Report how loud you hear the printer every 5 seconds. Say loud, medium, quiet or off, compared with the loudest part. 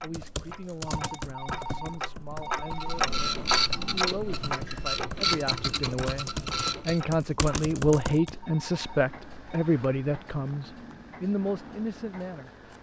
loud, loud, off.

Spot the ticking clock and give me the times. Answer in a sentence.
You can hear the ticking clock from 0.0 to 12.7 s.